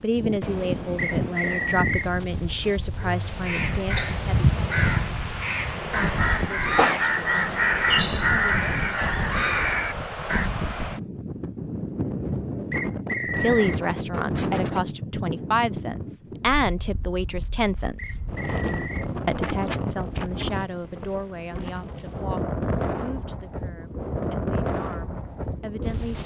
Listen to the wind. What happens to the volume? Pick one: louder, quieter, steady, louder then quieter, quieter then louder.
steady.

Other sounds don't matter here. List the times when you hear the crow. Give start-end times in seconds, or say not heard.
3.2-10.5.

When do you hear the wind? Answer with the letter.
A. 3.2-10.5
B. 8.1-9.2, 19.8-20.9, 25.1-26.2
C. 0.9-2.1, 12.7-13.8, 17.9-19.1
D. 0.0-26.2
D.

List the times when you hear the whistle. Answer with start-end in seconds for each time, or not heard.
0.9-2.1, 12.7-13.8, 17.9-19.1.